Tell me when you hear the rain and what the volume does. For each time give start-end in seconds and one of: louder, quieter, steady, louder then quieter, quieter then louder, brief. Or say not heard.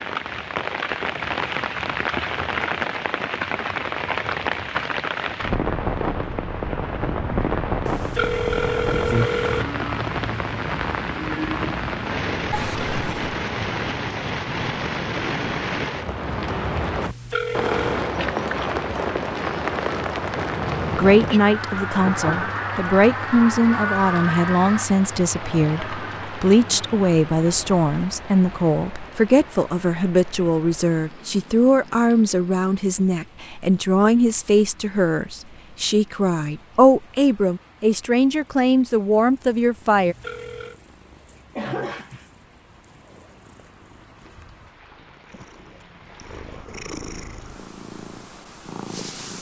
0.0-49.3 quieter.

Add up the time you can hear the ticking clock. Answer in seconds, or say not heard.
not heard.